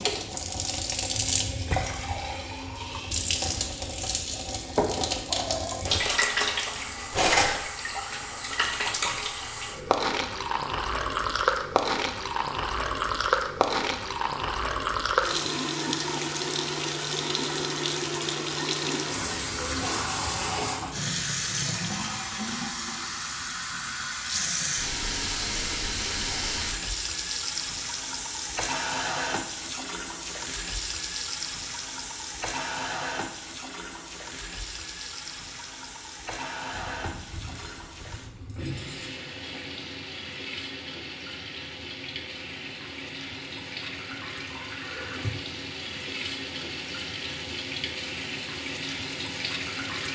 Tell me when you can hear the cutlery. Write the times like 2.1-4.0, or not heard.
7.1-7.6, 36.7-39.1.